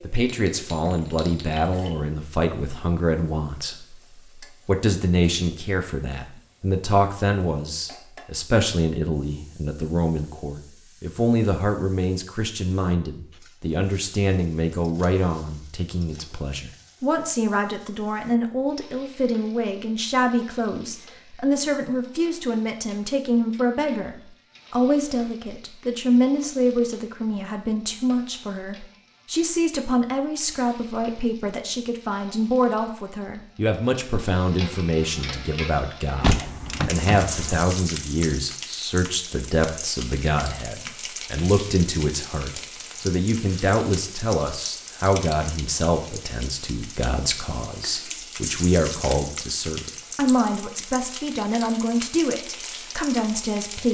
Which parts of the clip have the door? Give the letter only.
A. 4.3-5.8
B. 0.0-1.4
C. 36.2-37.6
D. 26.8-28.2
C.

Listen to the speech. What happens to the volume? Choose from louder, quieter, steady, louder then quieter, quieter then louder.
steady.